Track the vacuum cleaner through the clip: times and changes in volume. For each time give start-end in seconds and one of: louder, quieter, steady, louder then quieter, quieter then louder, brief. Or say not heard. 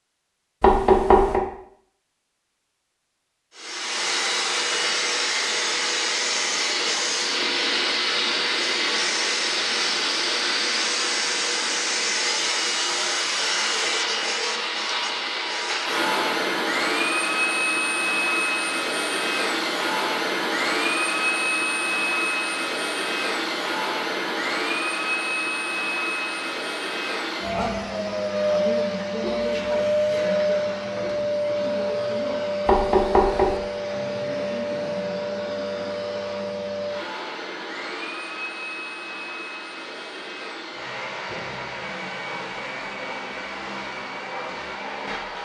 3.5-45.4 quieter.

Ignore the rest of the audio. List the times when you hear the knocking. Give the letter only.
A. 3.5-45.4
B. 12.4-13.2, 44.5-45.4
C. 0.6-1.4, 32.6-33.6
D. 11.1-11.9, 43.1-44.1
C.